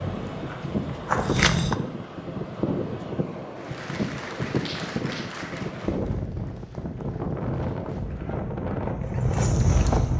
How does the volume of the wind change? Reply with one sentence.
The loudness of the wind stays about the same.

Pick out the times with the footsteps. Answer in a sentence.
You can hear the footsteps from 0.1 to 1.8 s and from 7.8 to 10.1 s.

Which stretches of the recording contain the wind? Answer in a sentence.
You can hear the wind from 0.0 to 10.1 s.